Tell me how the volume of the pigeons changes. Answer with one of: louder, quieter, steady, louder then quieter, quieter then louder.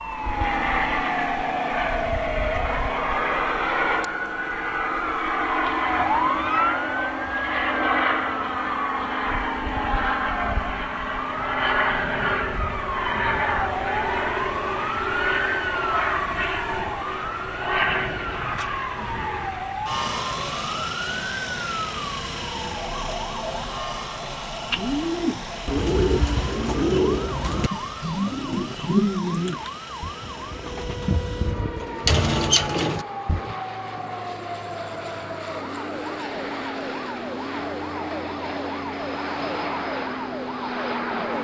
quieter then louder.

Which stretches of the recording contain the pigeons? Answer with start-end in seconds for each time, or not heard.
24.7-33.5.